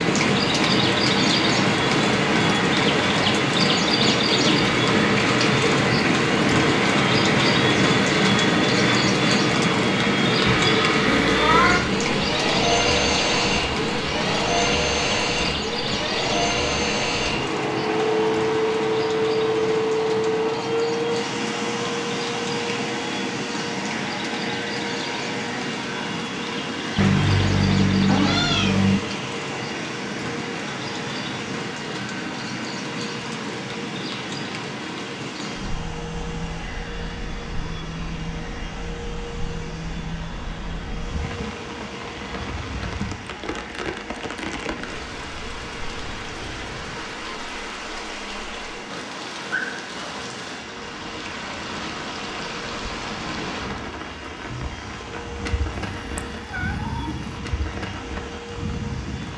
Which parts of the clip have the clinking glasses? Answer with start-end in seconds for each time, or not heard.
not heard.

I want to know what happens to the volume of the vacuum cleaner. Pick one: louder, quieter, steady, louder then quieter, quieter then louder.
quieter.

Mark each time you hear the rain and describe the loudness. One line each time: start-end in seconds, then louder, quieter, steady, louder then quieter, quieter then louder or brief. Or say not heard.
0.0-59.3 quieter.